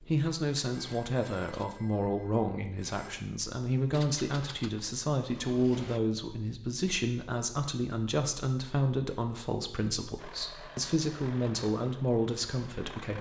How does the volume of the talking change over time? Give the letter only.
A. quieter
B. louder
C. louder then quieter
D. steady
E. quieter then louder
D.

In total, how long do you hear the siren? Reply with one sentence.
You can't hear the siren here.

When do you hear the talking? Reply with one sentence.
You can hear the talking from 0.0 to 13.1 s.